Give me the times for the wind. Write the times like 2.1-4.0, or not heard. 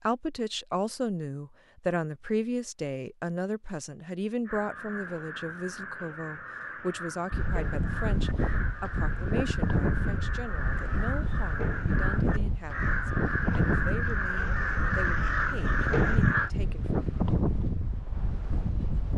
7.3-19.1.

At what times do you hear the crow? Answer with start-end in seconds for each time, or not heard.
4.5-16.5.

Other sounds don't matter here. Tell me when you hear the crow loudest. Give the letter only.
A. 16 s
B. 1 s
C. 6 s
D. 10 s
A.